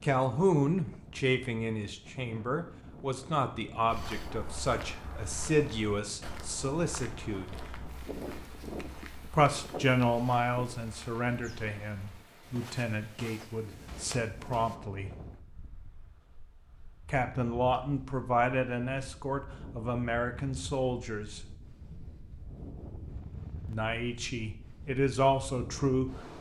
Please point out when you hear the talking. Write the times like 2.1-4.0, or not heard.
0.0-7.5, 9.3-15.1, 17.1-21.4, 23.6-26.1.